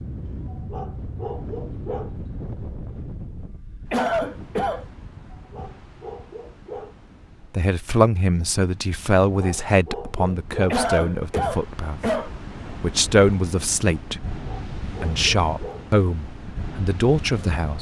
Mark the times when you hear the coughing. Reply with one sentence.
You can hear the coughing from 3.9 to 4.8 s and from 10.7 to 12.7 s.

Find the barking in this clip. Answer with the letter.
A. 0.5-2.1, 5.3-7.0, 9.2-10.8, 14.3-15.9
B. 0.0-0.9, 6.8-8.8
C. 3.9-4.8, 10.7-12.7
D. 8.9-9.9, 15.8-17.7
A.